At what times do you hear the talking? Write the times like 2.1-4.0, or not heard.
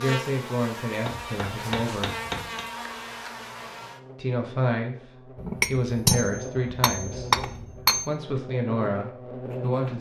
0.0-2.1, 4.2-9.9.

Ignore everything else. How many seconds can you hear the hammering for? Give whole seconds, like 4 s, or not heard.
4 s.